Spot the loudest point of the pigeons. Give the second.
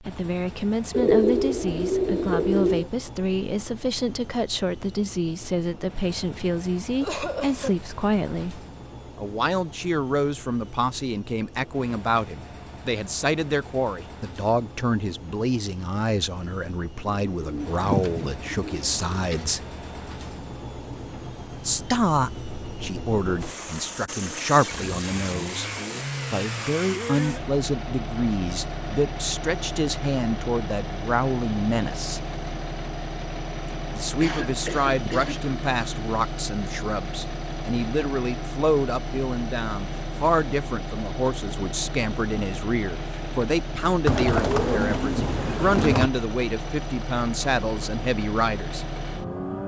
1 s.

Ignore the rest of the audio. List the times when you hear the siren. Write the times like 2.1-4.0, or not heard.
not heard.